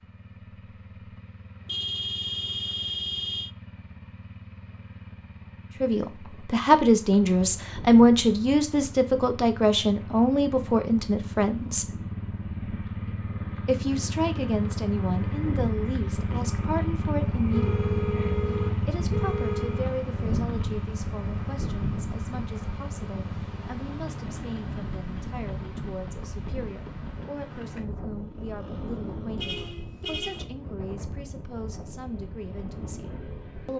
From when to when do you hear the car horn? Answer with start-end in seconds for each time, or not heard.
1.6-3.5, 17.5-19.9, 29.4-30.5.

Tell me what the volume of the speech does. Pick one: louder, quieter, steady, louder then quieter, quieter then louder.
quieter.